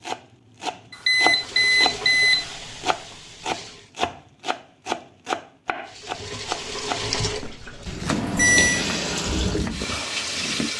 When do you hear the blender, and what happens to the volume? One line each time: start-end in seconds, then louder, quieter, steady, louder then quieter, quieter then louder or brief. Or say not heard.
not heard.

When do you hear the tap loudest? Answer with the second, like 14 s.
9 s.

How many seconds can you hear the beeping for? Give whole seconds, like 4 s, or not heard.
2 s.